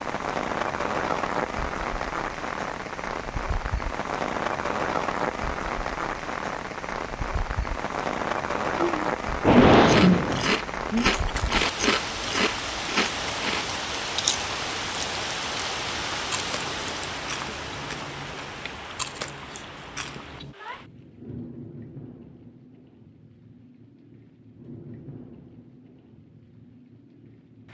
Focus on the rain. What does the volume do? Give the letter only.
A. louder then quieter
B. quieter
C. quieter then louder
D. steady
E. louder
B.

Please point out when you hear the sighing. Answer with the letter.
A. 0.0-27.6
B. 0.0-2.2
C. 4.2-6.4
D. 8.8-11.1
D.